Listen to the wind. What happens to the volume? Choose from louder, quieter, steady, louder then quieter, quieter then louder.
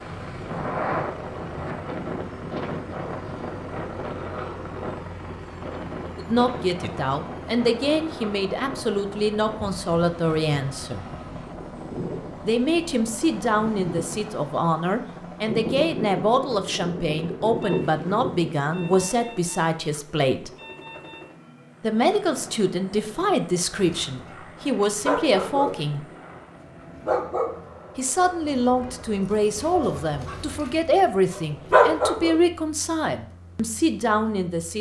quieter then louder.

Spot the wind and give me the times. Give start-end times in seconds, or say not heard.
0.0-19.1.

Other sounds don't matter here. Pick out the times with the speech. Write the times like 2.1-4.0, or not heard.
6.2-11.1, 12.4-20.5, 21.8-26.1, 27.9-34.7.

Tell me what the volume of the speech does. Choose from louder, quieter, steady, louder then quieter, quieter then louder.
steady.